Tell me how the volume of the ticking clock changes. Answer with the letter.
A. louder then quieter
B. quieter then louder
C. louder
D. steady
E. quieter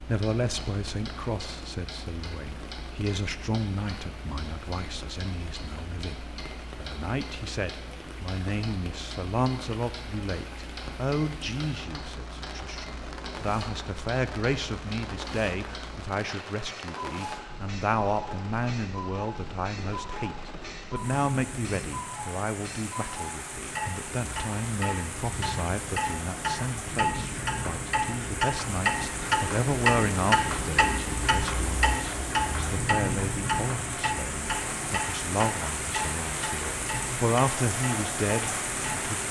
C.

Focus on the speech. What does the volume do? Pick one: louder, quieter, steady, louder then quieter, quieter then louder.
steady.